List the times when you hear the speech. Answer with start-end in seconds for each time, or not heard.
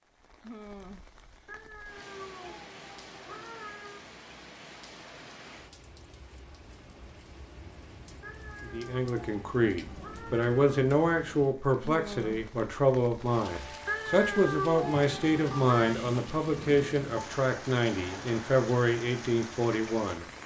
8.7-20.2.